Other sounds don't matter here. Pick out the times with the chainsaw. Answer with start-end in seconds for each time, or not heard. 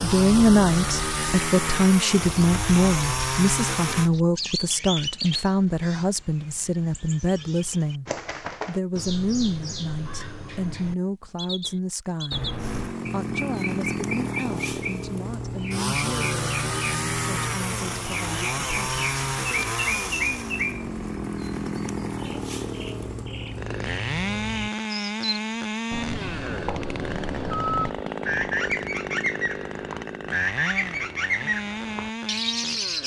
0.0-4.1, 12.6-33.0.